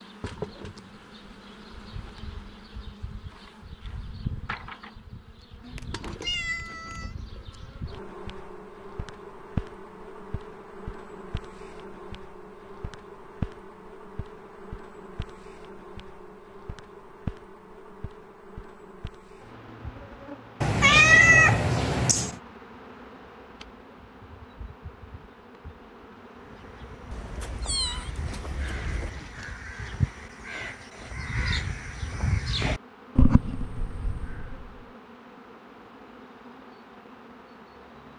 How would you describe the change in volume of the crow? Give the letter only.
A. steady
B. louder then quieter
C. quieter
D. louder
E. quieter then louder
D.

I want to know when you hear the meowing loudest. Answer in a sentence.
The loudest moment of the meowing is at 21 seconds.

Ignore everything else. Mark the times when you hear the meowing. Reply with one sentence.
The meowing can be heard from 5.6 to 7.2 s, from 20.6 to 22.4 s and from 27.1 to 29.1 s.